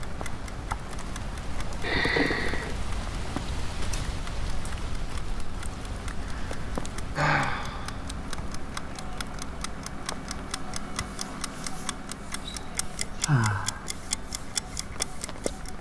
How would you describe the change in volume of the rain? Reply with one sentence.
The volume of the rain goes down.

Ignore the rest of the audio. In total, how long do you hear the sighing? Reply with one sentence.
The sighing can be heard for 3 seconds in total.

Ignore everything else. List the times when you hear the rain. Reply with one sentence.
You can hear the rain from 0.0 to 15.7 s.